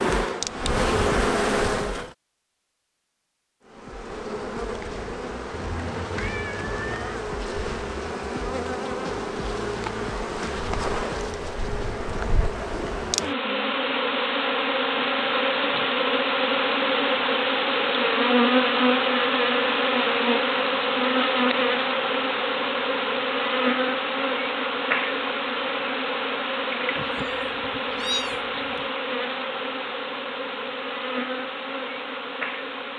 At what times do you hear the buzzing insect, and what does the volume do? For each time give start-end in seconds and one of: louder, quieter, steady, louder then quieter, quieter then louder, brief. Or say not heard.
0.0-2.1 brief
3.6-32.9 louder then quieter.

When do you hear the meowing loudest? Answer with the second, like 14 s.
28 s.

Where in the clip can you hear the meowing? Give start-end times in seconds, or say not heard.
5.8-7.2, 26.9-28.9.